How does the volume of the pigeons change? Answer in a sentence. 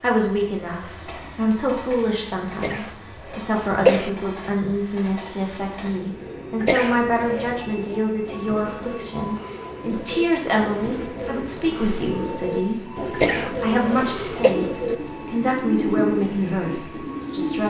The loudness of the pigeons goes up.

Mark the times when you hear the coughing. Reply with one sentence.
The coughing can be heard from 2.5 to 4.1 s, from 6.6 to 7.6 s and from 13.1 to 14.6 s.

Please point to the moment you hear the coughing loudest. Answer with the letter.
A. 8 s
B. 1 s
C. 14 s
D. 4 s
D.